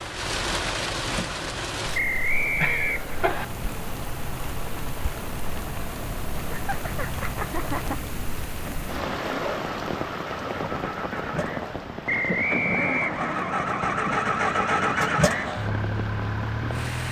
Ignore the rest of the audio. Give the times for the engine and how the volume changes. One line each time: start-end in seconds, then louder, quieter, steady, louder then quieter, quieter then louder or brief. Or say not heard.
3.1-17.0 louder.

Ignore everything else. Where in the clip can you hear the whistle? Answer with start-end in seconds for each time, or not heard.
1.9-3.5, 12.1-13.2.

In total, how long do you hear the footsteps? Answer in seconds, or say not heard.
not heard.